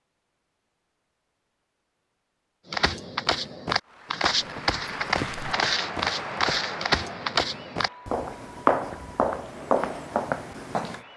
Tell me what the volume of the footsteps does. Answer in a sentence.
The loudness of the footsteps stays about the same.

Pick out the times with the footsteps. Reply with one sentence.
The footsteps can be heard from 2.7 to 11.0 s.